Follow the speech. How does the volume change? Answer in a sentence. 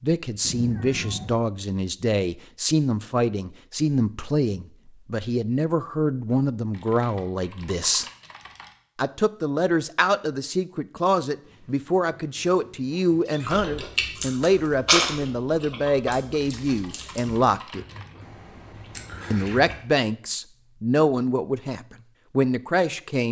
The volume of the speech stays about the same.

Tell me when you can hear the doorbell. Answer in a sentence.
You can't hear the doorbell here.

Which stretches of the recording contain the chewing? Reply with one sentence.
The chewing can be heard from 13.4 to 19.8 s.